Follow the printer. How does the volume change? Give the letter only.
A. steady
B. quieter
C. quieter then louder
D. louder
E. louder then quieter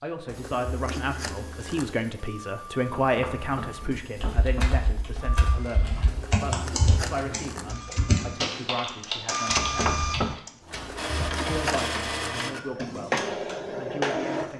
D.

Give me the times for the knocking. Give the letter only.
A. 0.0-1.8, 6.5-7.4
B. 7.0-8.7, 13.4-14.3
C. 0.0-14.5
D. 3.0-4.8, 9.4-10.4
D.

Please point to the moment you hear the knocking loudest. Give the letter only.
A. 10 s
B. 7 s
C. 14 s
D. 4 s
A.